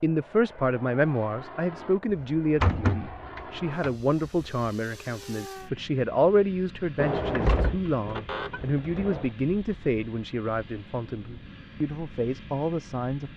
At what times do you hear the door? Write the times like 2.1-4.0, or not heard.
2.1-4.5, 7.0-9.3.